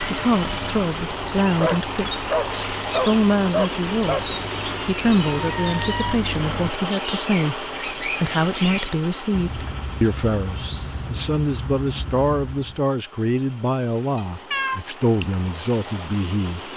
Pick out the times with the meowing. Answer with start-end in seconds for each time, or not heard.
4.4-5.8, 14.2-15.2.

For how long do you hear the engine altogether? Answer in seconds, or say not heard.
17 s.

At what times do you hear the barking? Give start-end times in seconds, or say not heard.
1.4-4.2.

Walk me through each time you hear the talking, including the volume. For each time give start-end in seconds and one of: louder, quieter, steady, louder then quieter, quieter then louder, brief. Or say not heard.
0.0-2.2 brief
2.9-16.7 steady.